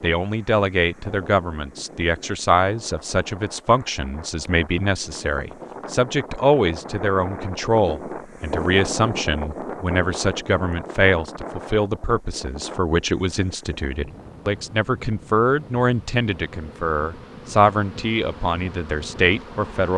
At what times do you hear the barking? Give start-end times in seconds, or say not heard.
not heard.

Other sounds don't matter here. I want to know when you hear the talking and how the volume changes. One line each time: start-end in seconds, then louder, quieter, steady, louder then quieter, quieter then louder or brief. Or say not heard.
0.0-19.9 steady.